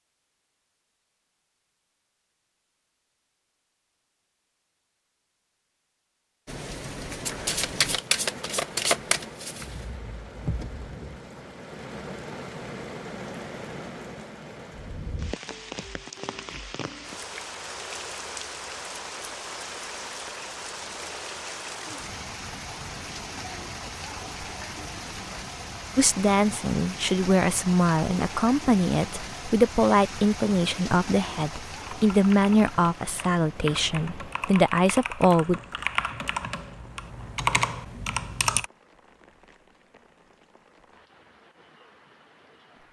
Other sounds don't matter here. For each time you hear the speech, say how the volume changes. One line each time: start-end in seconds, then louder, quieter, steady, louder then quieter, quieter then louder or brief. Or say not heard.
25.9-35.6 steady.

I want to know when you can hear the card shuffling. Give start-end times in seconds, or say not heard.
7.2-9.8.